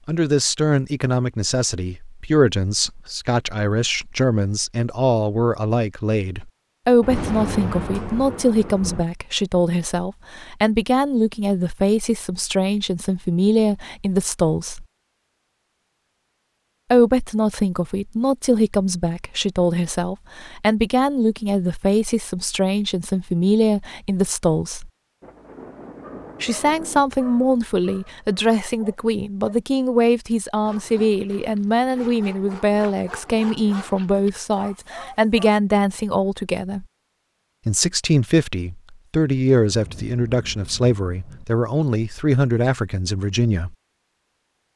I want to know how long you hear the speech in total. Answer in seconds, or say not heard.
39 s.